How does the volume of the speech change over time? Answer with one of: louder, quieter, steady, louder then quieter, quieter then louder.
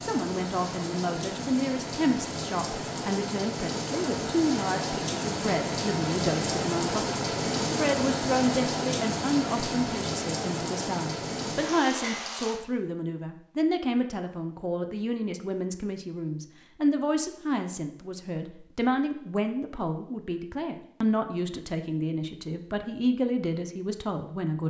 steady.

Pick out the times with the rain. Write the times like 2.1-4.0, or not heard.
0.0-12.6.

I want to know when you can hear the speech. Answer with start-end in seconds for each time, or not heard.
0.0-24.6.